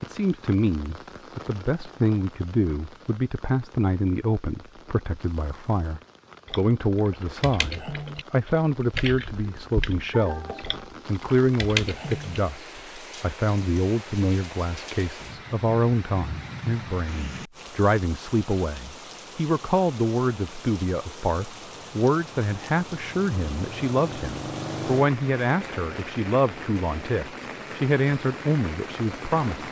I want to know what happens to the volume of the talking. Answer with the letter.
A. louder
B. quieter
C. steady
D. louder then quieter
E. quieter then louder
C.